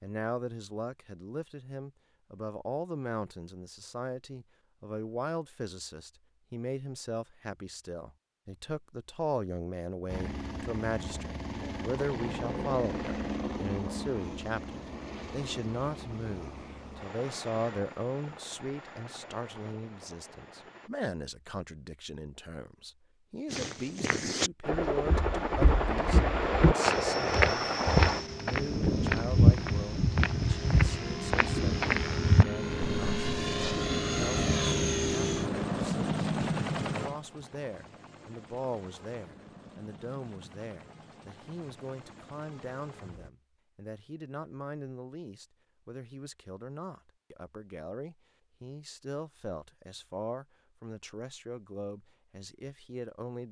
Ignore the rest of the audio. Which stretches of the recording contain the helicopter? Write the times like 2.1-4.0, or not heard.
10.1-20.9, 24.6-43.3.